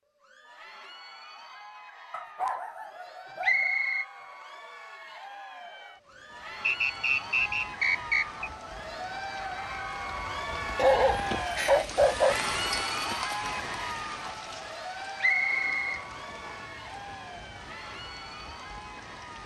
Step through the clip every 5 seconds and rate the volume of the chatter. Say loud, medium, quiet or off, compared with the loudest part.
quiet, medium, loud, medium.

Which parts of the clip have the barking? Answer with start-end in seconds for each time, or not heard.
2.1-3.8, 10.8-12.3.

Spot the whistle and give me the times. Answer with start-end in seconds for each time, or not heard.
3.4-4.0, 6.6-8.4, 15.2-16.6.